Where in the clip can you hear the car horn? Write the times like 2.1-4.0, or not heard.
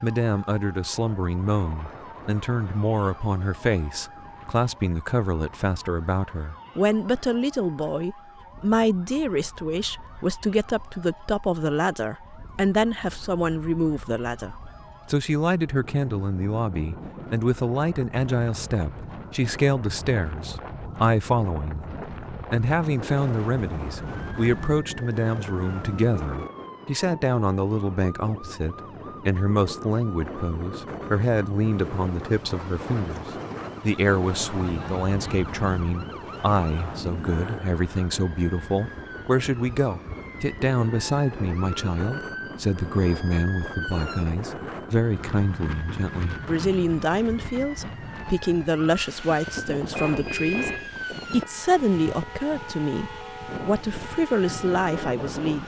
50.0-51.0.